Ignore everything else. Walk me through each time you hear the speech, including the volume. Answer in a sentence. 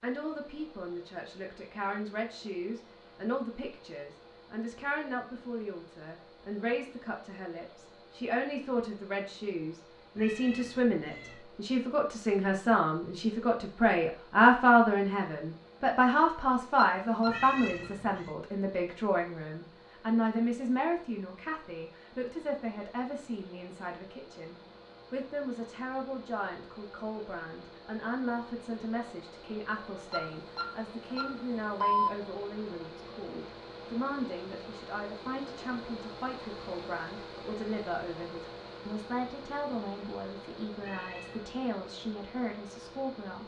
You can hear the speech from 0.0 to 43.4 s, getting louder then quieter.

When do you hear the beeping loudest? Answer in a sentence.
The volume of the beeping peaks at 32 seconds.